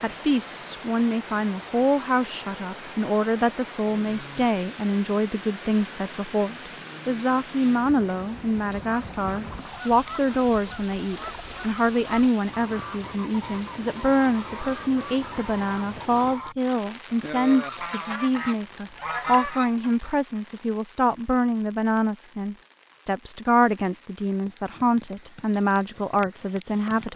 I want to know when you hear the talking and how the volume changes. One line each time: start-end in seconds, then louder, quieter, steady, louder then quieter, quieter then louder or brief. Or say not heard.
0.0-27.1 steady.